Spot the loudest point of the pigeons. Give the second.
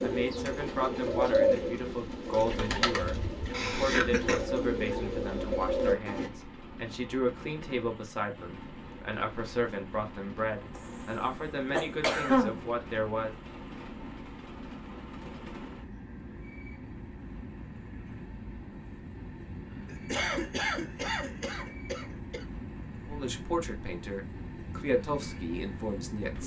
1 s.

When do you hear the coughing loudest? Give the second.
12 s.